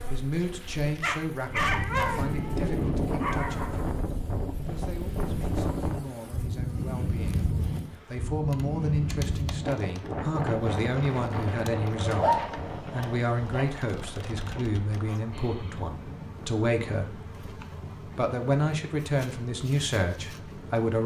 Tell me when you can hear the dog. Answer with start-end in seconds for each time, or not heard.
1.0-3.9, 12.0-13.7.